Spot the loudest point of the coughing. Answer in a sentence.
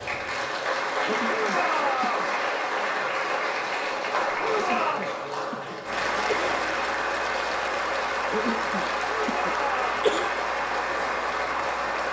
The loudest moment of the coughing is at 10 seconds.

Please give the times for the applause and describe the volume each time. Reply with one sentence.
You can hear the applause from 0.0 to 12.0 s, at a steady volume.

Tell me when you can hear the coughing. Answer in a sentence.
The coughing can be heard from 1.1 to 2.2 s, from 4.5 to 6.6 s and from 8.3 to 10.3 s.